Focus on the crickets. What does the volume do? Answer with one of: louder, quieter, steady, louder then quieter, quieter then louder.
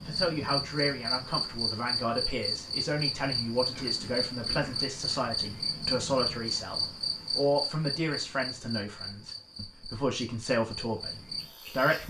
quieter.